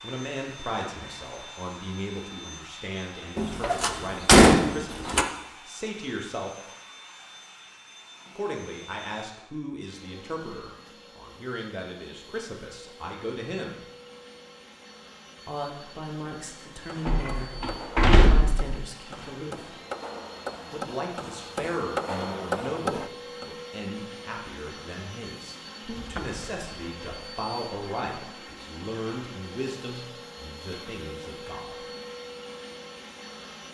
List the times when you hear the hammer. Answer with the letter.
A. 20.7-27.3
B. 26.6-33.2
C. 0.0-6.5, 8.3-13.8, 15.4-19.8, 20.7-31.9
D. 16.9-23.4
D.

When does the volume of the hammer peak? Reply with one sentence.
The loudest moment of the hammer is at 22 seconds.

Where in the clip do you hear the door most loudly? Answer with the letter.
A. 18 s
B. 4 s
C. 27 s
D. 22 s
B.